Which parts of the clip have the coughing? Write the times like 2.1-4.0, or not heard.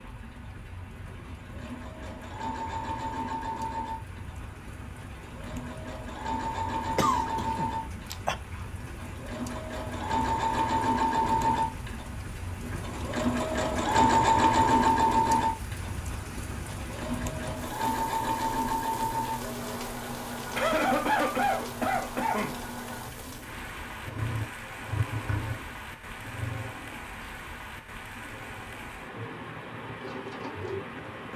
7.0-8.3, 20.6-22.6.